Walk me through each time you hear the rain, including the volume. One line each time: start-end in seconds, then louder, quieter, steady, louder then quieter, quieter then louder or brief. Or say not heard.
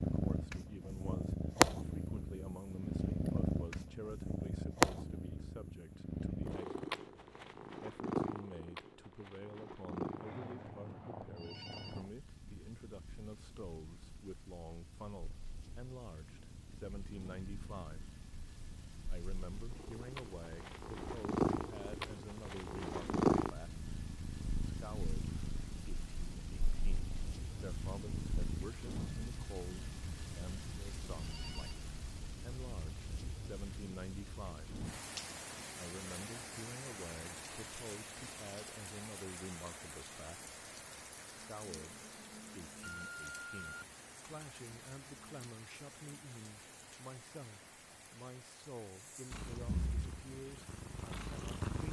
11.8-51.8 louder then quieter.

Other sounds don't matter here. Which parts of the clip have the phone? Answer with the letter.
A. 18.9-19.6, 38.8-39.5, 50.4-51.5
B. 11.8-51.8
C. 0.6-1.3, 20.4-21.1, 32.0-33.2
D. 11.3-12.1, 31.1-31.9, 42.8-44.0
D.